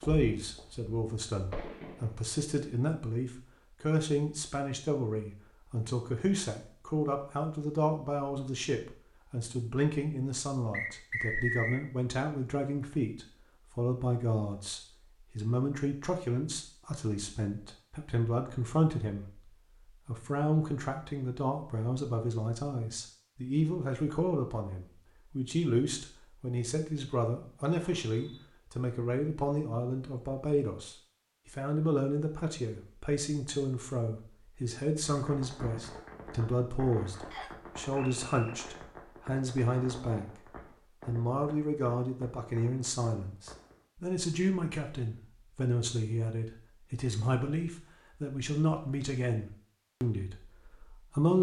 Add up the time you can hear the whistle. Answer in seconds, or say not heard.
3 s.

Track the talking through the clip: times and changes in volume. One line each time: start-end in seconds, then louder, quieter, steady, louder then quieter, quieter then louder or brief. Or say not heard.
0.0-40.3 steady
41.0-51.3 steady.